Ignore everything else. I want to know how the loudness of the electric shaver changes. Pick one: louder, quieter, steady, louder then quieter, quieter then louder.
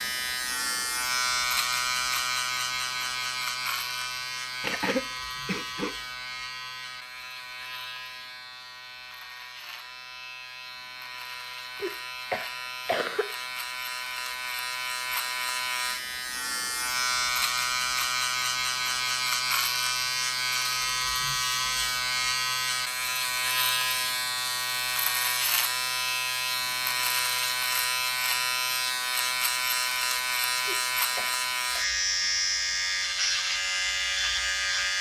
quieter then louder.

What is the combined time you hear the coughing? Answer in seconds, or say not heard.
4 s.